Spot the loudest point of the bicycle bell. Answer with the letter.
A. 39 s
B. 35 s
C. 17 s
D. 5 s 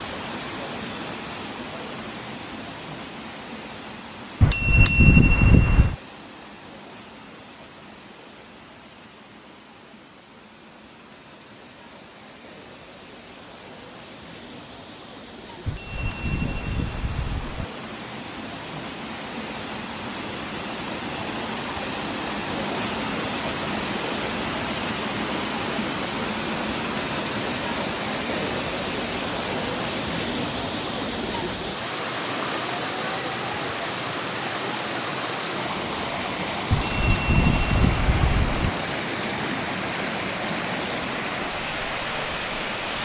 D.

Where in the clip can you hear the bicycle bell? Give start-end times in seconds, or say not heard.
4.4-6.0, 15.7-17.6, 36.7-38.7.